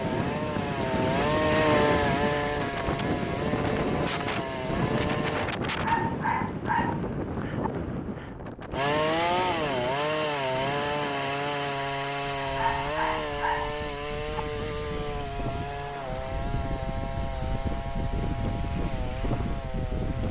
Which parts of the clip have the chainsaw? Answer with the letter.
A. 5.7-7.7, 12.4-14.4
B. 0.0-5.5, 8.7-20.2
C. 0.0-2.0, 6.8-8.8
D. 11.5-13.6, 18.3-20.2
B.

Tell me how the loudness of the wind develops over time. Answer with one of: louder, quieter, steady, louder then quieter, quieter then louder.
quieter then louder.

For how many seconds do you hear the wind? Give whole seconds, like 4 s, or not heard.
20 s.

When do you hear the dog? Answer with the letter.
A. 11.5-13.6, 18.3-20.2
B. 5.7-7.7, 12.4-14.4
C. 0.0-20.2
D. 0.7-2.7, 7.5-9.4
B.